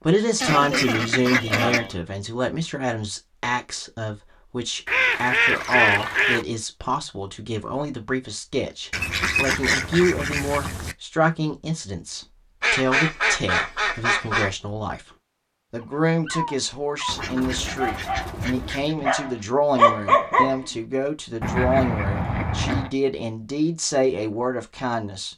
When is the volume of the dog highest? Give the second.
20 s.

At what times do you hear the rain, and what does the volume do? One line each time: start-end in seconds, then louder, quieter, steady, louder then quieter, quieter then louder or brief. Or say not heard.
not heard.